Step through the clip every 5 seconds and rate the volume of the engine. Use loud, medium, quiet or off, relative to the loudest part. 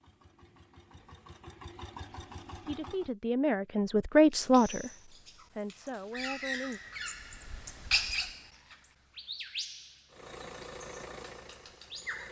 loud, off, loud.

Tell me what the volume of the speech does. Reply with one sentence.
The volume of the speech goes up, then down.